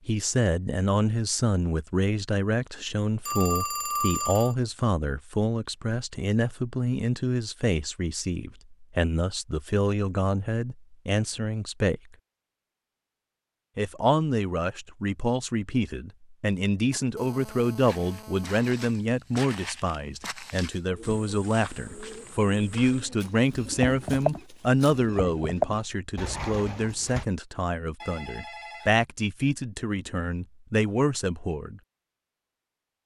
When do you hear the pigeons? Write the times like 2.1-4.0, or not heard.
20.8-27.2.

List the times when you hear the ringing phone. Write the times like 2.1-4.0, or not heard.
3.2-4.5, 16.9-18.6, 28.0-28.9.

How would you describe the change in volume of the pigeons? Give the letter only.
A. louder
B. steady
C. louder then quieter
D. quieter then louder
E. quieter
C.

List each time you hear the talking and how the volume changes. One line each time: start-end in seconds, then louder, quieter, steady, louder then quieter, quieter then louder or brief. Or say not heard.
0.1-12.0 steady
13.8-31.8 steady.